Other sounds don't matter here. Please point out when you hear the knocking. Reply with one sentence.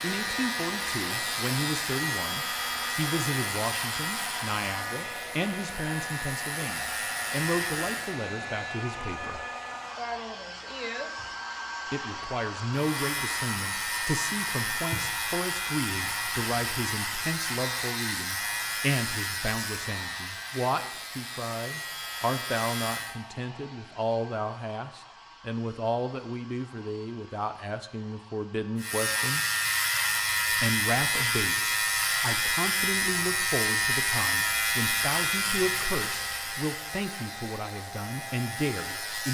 You can't hear the knocking here.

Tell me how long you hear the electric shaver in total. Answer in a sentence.
The electric shaver can be heard for 29 seconds in total.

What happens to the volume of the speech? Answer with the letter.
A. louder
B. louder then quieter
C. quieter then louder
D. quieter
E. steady
E.